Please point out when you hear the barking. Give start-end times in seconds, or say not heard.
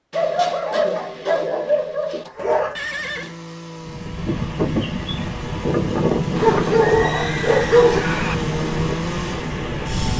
0.1-2.8, 6.4-8.0.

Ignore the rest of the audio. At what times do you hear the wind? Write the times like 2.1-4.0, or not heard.
3.8-10.1.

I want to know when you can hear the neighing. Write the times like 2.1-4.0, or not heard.
2.8-3.4, 6.3-8.3.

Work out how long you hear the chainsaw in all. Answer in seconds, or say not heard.
7 s.